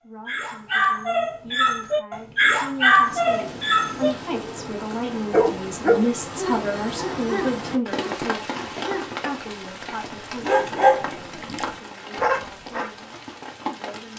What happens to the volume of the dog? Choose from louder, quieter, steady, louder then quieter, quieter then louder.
quieter then louder.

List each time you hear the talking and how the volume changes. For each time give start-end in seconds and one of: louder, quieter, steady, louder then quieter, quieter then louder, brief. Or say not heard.
0.0-10.6 louder then quieter
11.3-14.1 brief.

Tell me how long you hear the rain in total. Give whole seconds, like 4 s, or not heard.
11 s.